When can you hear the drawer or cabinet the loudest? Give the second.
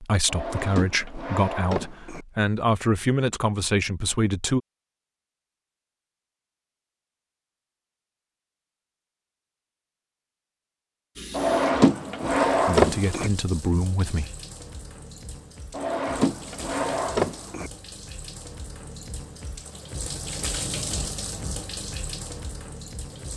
13 s.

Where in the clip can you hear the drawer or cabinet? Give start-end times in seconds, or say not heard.
0.2-2.2, 11.3-13.3, 15.7-17.7.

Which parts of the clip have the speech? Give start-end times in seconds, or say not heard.
0.0-4.6, 12.7-14.3.